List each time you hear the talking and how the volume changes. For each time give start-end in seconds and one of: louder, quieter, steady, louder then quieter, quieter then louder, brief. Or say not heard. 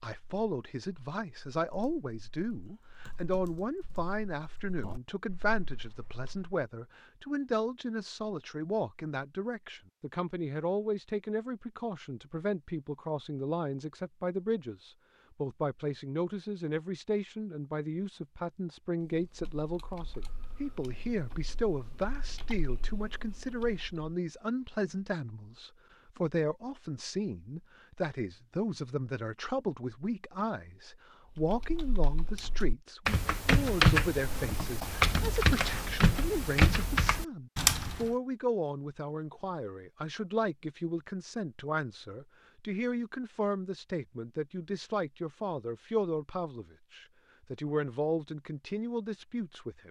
0.0-49.8 steady.